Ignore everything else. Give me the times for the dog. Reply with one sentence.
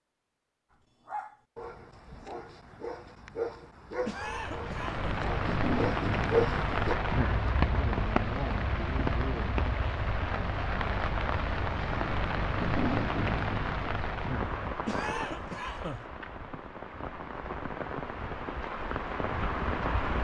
The dog can be heard from 1.1 to 7.0 s.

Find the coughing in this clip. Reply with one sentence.
The coughing can be heard from 4.0 to 5.2 s and from 14.8 to 16.1 s.